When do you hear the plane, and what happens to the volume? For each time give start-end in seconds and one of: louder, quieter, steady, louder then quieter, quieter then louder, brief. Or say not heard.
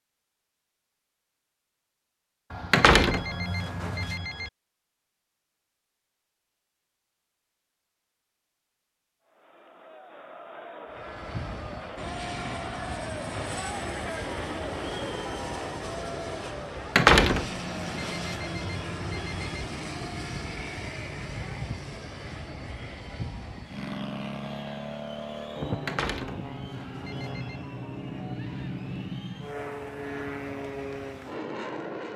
10.9-32.1 steady.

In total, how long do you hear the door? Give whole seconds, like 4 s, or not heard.
4 s.